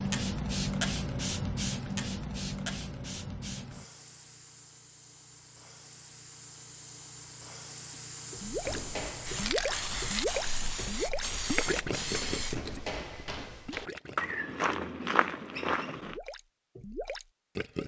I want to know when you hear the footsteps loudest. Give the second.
15 s.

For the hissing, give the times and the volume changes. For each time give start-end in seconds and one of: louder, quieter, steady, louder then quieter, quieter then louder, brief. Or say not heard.
0.0-12.8 quieter then louder.